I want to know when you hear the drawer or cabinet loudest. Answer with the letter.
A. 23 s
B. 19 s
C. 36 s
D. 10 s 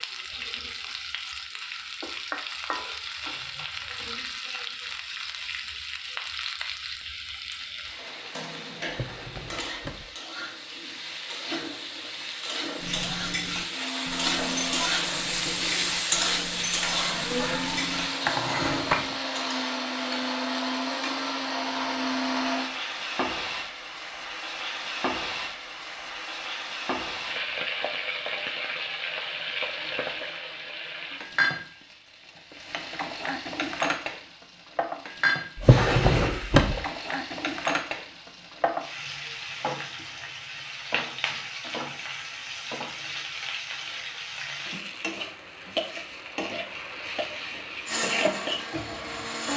C.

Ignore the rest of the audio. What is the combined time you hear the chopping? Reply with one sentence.
The chopping can't be heard in this clip.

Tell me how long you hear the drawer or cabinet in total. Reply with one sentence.
You can hear the drawer or cabinet for 3 seconds altogether.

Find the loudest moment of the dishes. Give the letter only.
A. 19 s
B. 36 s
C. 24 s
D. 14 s
A.